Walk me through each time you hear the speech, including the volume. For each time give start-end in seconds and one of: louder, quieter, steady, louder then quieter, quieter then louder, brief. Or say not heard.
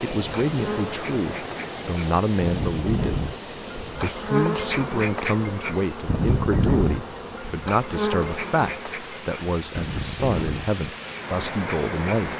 0.0-12.3 steady.